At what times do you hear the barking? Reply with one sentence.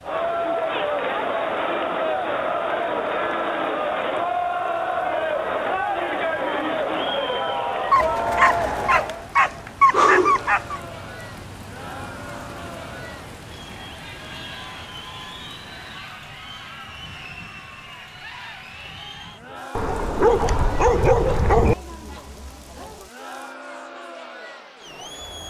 You can hear the barking from 7.9 to 10.8 s and from 19.8 to 21.8 s.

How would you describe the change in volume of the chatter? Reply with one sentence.
The volume of the chatter goes down.